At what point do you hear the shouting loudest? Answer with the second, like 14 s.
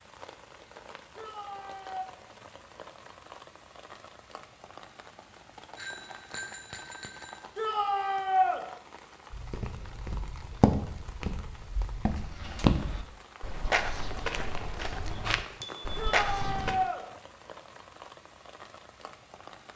8 s.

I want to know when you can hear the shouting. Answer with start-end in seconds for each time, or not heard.
1.1-2.1, 7.5-8.6, 15.9-17.0.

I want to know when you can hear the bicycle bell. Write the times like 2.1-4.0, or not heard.
5.8-7.4, 15.4-16.8.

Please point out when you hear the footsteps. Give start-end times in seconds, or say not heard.
9.3-16.8.